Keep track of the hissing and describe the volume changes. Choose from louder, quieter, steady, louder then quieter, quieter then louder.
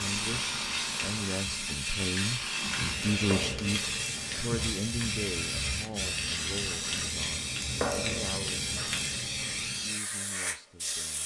steady.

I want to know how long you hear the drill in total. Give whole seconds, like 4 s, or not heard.
3 s.